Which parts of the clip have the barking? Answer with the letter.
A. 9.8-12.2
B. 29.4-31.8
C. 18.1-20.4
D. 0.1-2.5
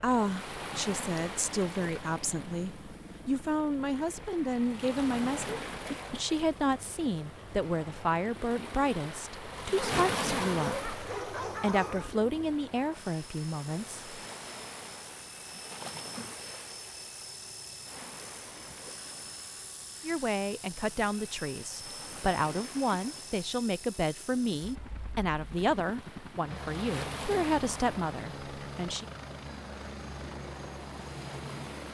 A.